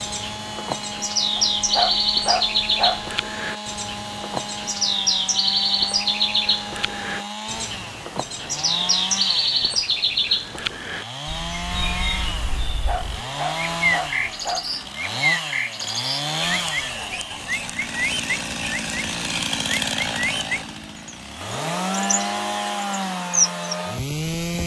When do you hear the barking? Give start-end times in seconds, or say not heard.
1.4-3.1, 12.7-14.9.